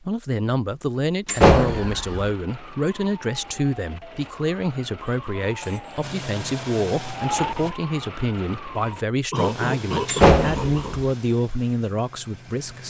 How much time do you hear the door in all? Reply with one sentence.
The door can be heard for 2 seconds in total.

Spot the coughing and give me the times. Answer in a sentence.
You can hear the coughing from 0.9 to 2.2 s, from 5.6 to 6.0 s and from 9.3 to 11.0 s.